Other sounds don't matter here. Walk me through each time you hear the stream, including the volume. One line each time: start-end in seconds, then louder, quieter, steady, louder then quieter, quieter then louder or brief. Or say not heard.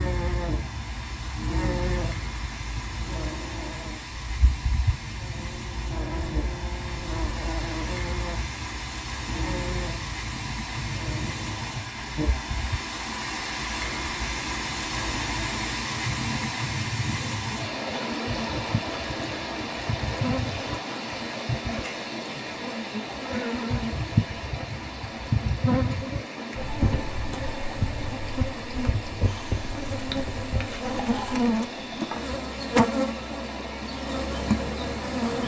0.0-35.4 louder then quieter.